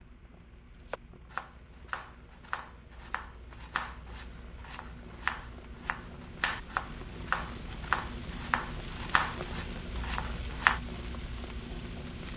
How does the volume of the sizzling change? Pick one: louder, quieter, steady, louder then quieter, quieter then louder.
louder.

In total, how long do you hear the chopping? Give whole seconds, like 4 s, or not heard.
10 s.